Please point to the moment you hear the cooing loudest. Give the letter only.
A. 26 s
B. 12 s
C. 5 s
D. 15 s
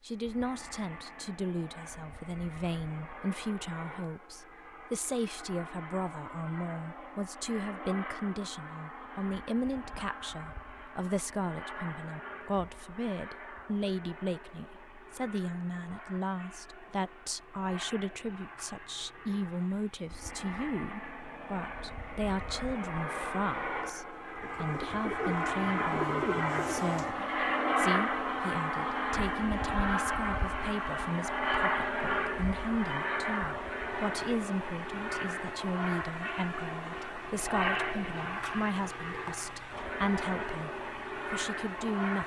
A.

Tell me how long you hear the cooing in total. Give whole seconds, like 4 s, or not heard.
3 s.